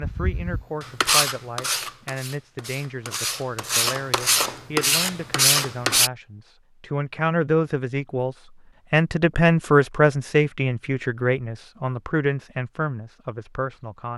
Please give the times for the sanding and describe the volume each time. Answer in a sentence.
The sanding can be heard from 0.0 to 6.1 s, getting quieter then louder.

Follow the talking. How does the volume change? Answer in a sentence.
The loudness of the talking goes up, then down.